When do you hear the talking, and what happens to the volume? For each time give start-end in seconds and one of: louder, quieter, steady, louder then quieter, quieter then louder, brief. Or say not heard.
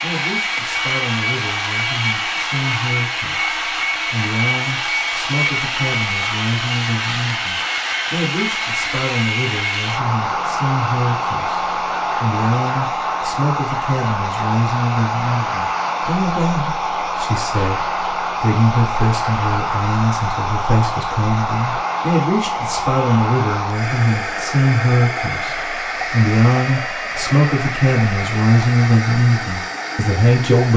0.0-30.7 louder.